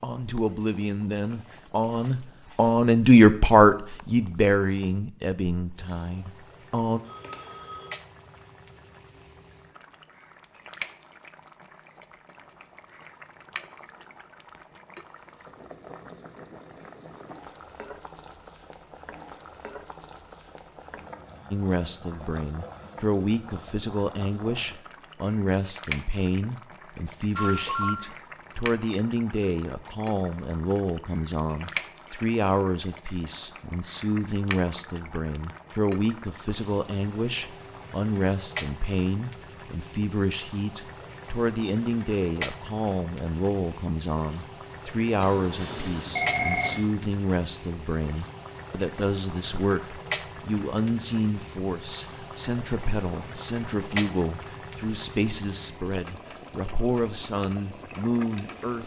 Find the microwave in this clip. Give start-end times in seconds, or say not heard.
not heard.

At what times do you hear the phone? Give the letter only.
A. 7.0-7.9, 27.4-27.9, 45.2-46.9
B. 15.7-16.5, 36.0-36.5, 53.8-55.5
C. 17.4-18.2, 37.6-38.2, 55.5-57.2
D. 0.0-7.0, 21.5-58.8
A.